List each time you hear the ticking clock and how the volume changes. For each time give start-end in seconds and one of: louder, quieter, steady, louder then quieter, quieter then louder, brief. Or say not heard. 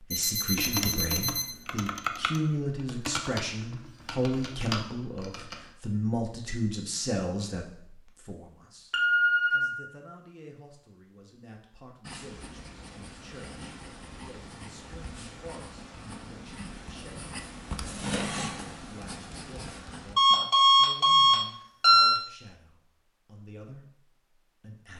not heard.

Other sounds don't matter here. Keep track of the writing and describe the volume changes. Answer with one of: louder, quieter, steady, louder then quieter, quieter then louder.
louder then quieter.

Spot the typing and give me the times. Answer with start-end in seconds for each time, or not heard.
0.6-5.7.